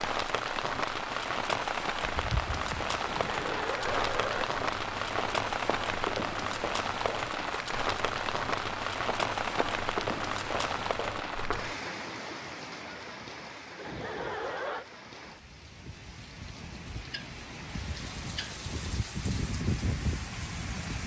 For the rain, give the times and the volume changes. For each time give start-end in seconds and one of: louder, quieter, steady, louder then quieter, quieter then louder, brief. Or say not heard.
0.0-21.0 quieter then louder.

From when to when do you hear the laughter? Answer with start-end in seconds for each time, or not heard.
3.0-4.5, 13.8-14.8.